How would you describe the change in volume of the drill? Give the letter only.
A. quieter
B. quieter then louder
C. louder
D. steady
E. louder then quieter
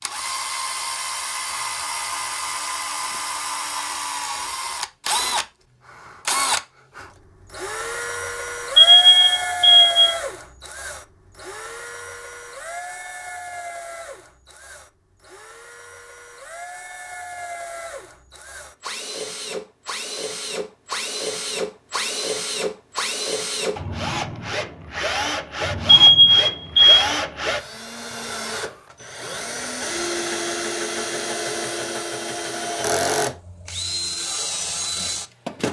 B.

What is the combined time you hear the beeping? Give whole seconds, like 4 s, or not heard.
2 s.